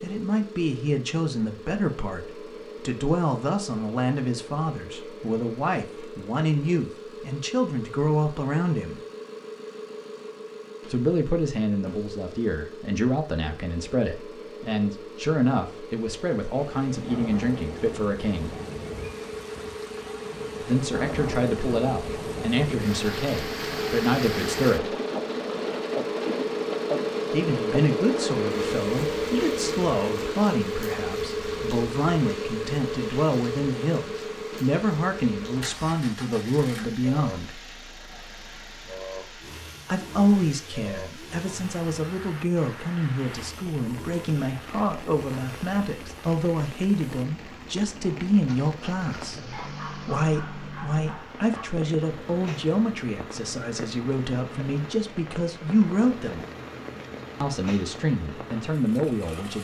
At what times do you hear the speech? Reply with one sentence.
The speech can be heard from 0.0 to 9.0 s, from 10.8 to 18.6 s, from 20.6 to 24.9 s, from 27.3 to 37.6 s, from 39.9 to 56.5 s and from 57.4 to 59.5 s.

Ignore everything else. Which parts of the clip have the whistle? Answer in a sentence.
The whistle can't be heard in this clip.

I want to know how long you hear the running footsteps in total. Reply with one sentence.
The running footsteps can't be heard in this clip.